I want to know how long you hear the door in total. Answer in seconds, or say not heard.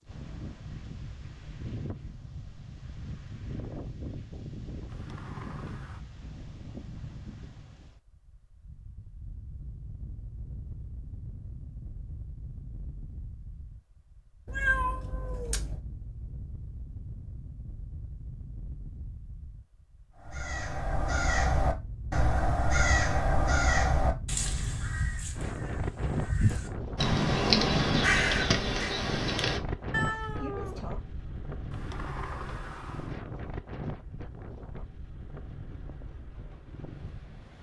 3 s.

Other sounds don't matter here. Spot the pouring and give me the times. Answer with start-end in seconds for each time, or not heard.
not heard.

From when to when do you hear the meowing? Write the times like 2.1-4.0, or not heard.
14.4-15.8, 29.9-30.9.